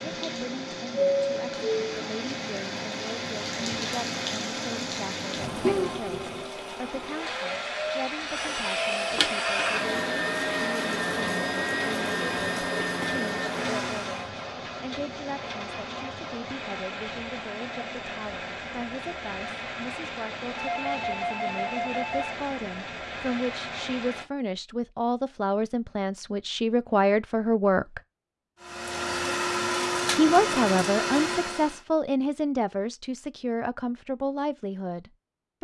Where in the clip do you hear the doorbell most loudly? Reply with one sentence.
The loudest moment of the doorbell is at 1 second.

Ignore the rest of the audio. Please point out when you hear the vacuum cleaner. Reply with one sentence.
You can hear the vacuum cleaner from 0.0 to 14.3 s and from 28.6 to 31.8 s.